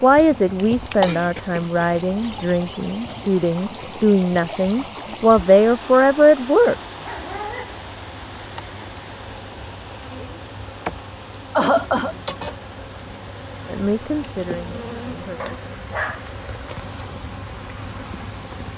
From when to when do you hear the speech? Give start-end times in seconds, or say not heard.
0.0-6.8, 13.7-15.6.